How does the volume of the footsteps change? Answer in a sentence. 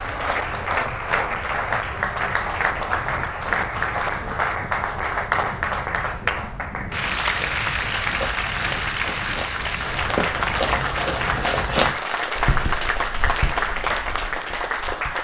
The loudness of the footsteps goes up, then down.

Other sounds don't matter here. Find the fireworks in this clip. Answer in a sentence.
You can't hear the fireworks here.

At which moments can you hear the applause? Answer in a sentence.
You can hear the applause from 0.0 to 15.1 s.